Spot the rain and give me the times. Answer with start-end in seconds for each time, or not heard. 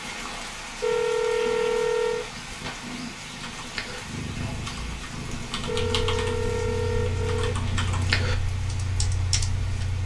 0.0-10.0.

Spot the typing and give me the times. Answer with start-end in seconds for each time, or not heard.
3.4-9.8.